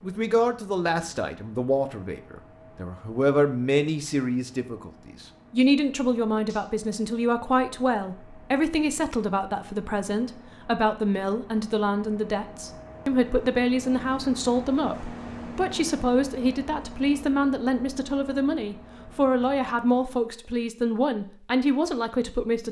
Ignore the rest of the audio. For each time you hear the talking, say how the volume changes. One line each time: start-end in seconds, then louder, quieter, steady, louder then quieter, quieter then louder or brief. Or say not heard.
0.0-22.6 steady.